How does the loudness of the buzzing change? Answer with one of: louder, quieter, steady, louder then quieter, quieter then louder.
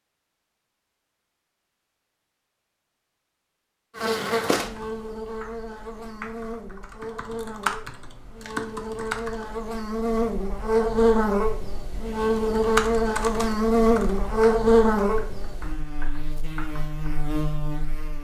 louder then quieter.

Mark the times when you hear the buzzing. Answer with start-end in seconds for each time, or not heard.
4.0-18.1.